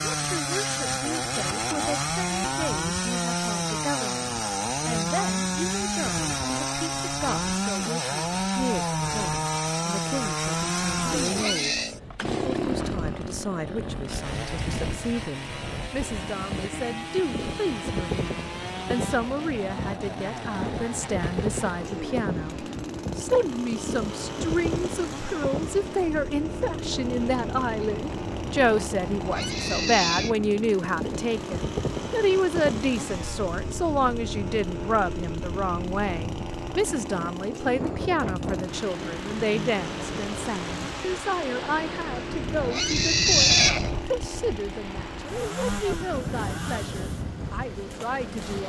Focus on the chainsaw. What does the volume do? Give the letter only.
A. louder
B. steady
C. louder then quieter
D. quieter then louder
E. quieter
E.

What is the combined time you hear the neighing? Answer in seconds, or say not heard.
3 s.